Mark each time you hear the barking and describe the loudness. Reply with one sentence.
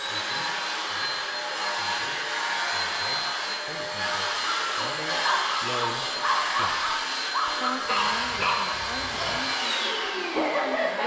The barking can be heard from 4.5 to 11.0 s, at a steady volume.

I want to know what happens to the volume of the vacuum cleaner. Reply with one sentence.
The volume of the vacuum cleaner stays about the same.